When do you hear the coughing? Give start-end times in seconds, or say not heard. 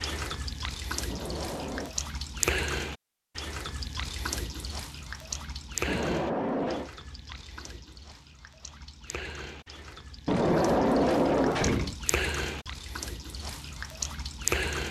not heard.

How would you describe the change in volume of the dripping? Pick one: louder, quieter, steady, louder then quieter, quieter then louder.
quieter then louder.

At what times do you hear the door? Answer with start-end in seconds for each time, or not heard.
1.1-1.9, 5.8-6.9, 10.2-11.9.